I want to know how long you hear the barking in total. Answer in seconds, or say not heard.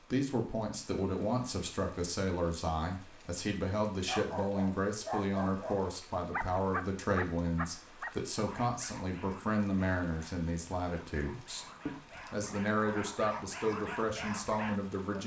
11 s.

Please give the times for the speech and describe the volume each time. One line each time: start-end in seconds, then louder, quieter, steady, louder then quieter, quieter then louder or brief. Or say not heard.
0.1-15.2 steady.